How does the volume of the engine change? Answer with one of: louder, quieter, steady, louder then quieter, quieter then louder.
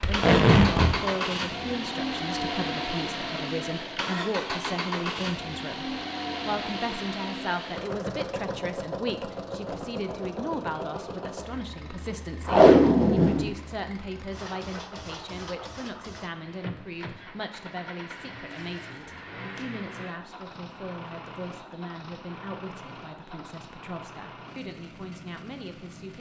quieter.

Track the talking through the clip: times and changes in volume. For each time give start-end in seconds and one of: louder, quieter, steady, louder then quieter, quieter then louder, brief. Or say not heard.
0.1-26.1 quieter.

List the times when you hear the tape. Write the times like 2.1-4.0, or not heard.
0.0-0.9, 12.4-13.5, 18.5-19.6.